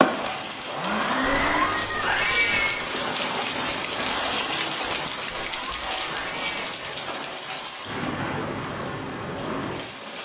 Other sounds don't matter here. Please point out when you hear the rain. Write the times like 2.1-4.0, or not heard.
0.0-10.1.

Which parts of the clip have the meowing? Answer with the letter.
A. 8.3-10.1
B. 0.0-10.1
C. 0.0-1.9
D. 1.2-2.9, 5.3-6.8
D.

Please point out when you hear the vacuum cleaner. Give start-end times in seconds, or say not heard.
0.0-1.9.